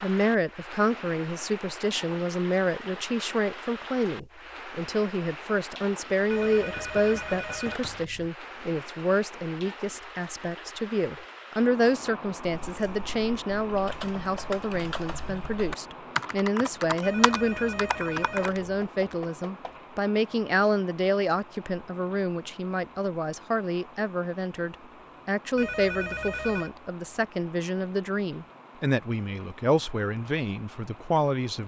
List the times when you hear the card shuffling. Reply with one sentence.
You can't hear the card shuffling here.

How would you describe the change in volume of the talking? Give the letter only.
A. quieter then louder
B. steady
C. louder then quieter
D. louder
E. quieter
B.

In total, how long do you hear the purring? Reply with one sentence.
The purring can't be heard in this clip.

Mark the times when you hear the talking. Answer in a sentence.
You can hear the talking from 0.0 to 31.6 s.